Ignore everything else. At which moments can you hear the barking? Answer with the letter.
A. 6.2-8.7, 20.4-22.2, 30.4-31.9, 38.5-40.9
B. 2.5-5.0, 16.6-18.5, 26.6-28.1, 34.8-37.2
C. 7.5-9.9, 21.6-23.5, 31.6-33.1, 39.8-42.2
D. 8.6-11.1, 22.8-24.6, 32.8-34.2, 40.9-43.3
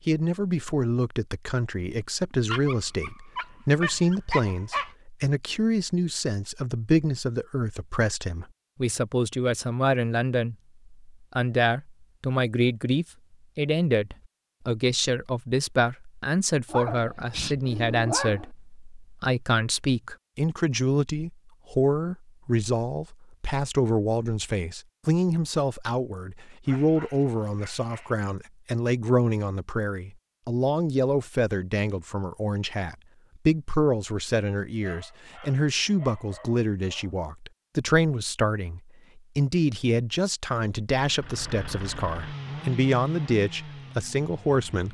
B.